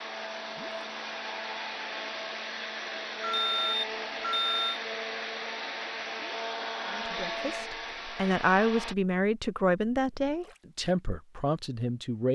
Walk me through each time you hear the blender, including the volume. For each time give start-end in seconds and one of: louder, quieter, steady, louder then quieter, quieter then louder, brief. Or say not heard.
0.0-8.9 steady.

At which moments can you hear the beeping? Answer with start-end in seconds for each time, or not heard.
3.2-4.8.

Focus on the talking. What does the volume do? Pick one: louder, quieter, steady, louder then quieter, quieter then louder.
louder then quieter.